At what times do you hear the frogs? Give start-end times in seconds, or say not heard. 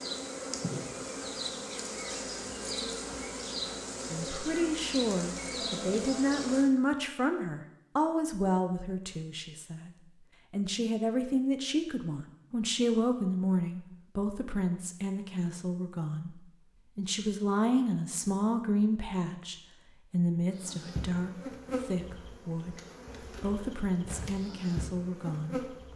not heard.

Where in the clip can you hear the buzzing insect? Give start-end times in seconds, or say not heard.
0.0-6.7, 20.5-25.9.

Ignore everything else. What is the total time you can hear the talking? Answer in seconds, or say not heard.
21 s.